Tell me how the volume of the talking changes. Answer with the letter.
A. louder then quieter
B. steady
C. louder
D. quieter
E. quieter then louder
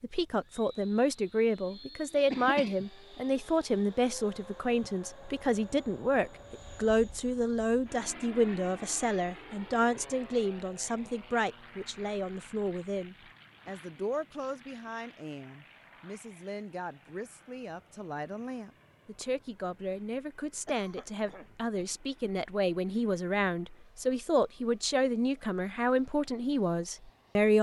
E.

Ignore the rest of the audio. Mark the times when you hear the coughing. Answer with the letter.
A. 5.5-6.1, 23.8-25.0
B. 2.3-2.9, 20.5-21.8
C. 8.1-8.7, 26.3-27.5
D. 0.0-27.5
B.